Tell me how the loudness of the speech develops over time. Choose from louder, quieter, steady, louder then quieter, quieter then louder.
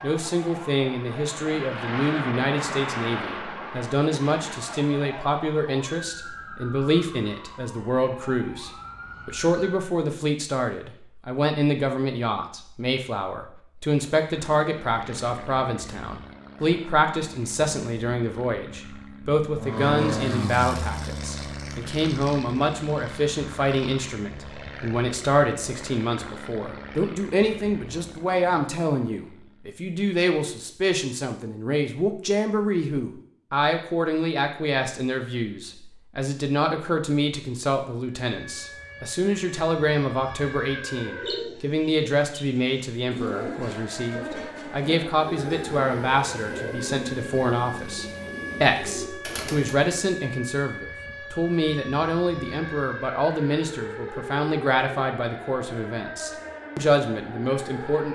steady.